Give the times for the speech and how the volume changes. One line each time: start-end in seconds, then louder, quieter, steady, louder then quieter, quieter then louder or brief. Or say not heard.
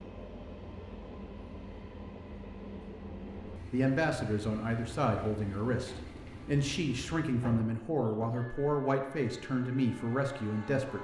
3.5-10.9 steady.